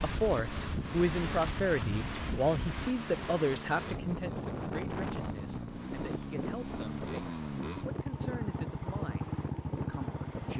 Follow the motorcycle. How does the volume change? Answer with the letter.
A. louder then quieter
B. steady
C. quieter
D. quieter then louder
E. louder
E.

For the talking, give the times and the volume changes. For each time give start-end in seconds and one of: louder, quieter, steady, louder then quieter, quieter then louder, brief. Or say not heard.
0.0-10.5 quieter.